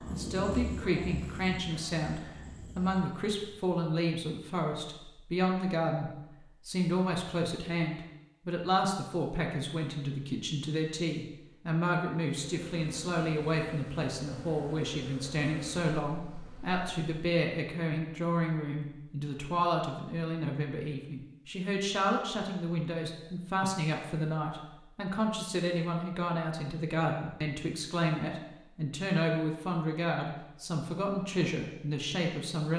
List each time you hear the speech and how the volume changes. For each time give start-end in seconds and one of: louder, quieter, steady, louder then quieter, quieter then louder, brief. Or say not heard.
0.0-32.7 steady.